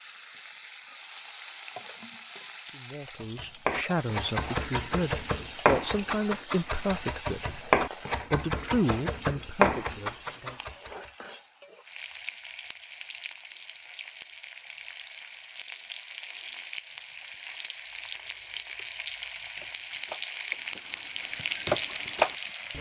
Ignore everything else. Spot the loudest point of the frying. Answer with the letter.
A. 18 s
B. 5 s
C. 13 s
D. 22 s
D.